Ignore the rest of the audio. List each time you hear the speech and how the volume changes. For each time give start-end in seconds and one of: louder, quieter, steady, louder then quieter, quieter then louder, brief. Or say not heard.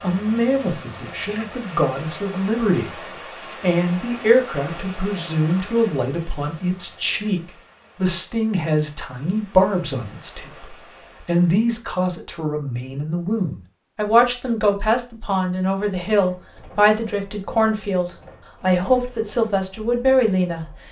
0.0-20.6 steady.